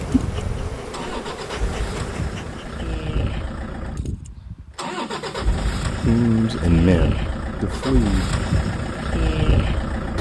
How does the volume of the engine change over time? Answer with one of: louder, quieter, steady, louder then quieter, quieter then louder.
louder.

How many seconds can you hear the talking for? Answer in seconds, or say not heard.
2 s.